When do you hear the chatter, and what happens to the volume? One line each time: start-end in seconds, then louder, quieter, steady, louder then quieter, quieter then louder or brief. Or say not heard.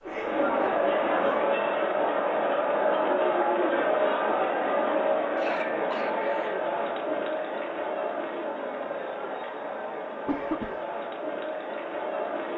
0.0-12.5 quieter.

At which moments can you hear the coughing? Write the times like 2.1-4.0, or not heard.
0.1-1.4, 5.3-6.6, 10.2-10.8.